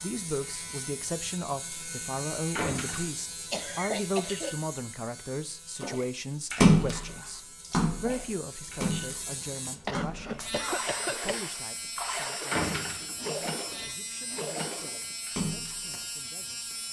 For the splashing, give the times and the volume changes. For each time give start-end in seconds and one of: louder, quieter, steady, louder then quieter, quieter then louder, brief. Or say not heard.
5.8-16.0 quieter.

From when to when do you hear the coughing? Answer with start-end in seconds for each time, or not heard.
3.5-4.5, 9.8-11.4.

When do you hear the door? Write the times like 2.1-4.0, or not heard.
2.5-3.1, 12.5-13.2.